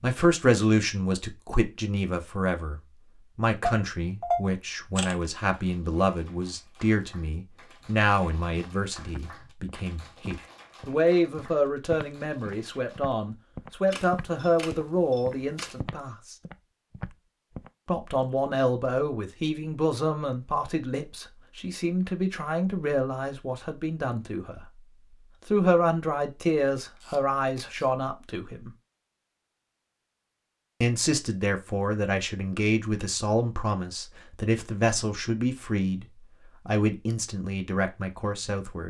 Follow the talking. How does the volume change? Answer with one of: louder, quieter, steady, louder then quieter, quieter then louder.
steady.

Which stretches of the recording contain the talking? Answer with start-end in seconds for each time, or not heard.
0.0-16.4, 17.9-24.6, 25.4-28.7, 30.8-38.8.